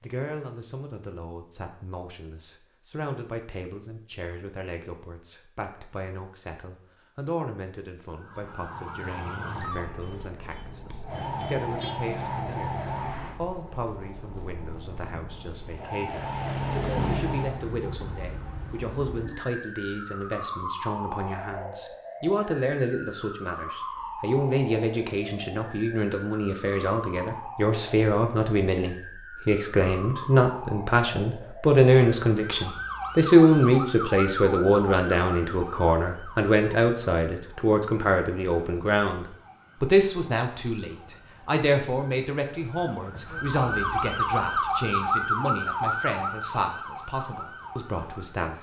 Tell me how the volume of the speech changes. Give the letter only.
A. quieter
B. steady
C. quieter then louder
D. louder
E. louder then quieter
E.